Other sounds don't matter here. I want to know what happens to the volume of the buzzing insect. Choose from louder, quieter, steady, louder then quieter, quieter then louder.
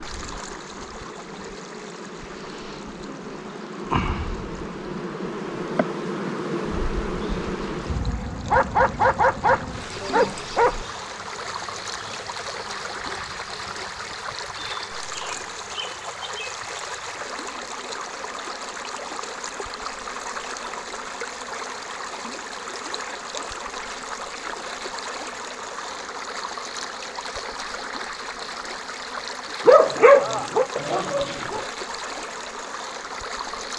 quieter.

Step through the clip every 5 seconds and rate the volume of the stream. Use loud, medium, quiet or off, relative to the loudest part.
medium, medium, loud, loud, loud, loud, loud.